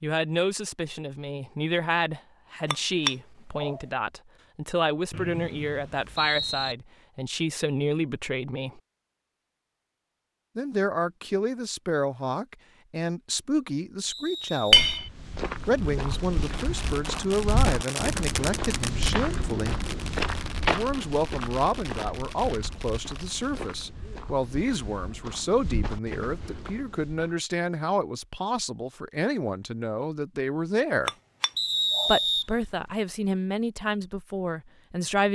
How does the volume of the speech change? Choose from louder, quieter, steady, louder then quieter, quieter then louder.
steady.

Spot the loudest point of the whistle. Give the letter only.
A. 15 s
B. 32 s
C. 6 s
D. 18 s
B.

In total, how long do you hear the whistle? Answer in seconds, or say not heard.
4 s.